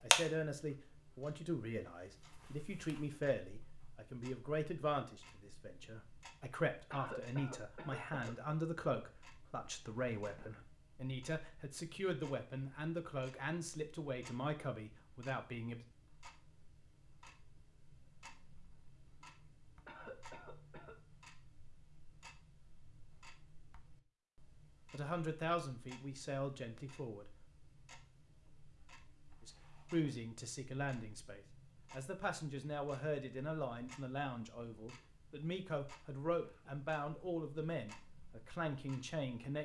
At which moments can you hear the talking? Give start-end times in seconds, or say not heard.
0.0-15.8, 24.9-27.2, 29.4-39.6.